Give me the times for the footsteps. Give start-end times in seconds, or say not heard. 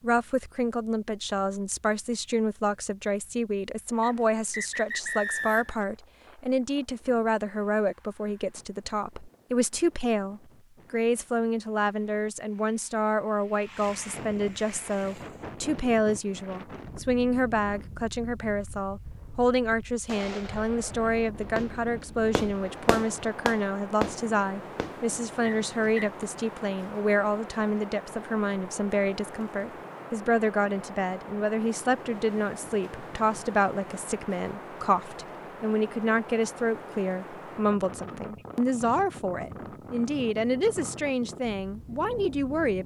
not heard.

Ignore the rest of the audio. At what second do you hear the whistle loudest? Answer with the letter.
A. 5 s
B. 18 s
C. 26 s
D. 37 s
A.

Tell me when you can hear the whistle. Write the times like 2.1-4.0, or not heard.
4.0-5.8, 25.4-26.1.